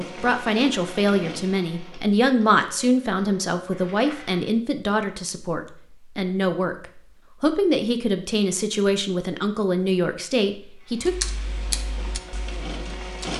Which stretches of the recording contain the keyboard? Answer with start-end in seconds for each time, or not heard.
11.0-13.3.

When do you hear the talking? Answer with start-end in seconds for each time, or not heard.
0.0-11.2.